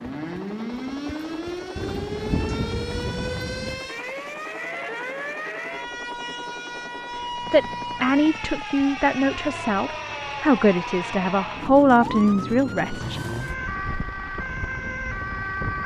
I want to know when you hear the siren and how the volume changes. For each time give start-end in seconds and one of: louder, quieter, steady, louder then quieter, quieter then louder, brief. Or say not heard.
0.0-15.8 steady.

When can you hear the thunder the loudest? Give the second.
2 s.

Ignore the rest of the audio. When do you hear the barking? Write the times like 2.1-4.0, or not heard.
not heard.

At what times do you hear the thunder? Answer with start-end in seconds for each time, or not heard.
1.8-3.8.